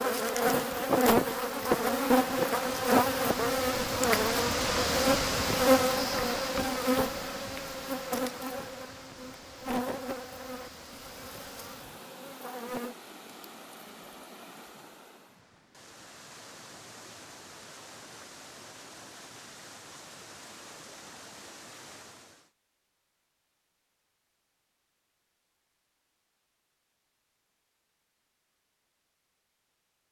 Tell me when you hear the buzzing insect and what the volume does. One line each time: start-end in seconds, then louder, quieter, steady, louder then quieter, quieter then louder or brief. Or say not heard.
0.0-12.9 quieter.